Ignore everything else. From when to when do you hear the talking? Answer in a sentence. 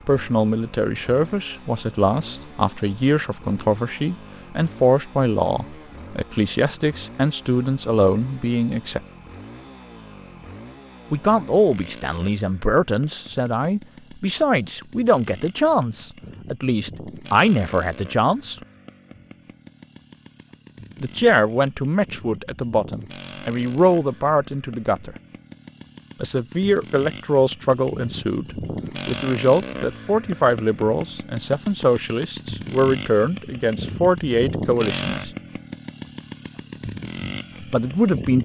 The talking can be heard from 0.1 to 9.0 s, from 11.1 to 18.6 s, from 21.0 to 25.1 s, from 26.2 to 35.3 s and from 37.7 to 38.4 s.